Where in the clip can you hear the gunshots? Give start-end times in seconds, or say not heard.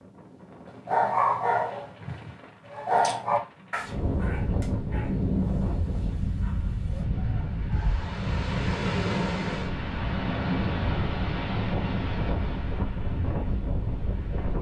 not heard.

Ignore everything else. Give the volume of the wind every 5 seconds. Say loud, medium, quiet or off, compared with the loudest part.
medium, loud, loud.